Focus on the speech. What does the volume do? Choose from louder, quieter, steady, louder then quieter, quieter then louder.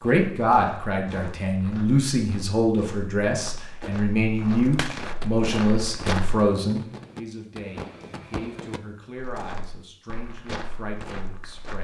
quieter.